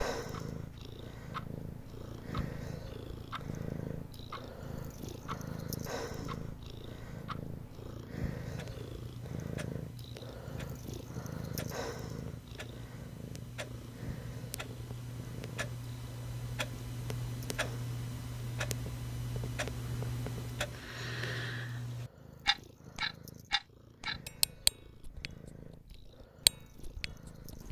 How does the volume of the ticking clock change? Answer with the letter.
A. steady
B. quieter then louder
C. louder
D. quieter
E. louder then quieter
C.